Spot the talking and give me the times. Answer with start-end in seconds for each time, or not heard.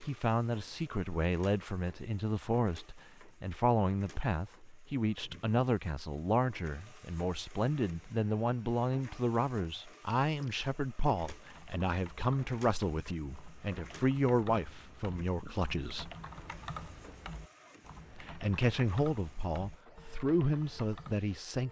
0.0-16.1, 18.1-21.6.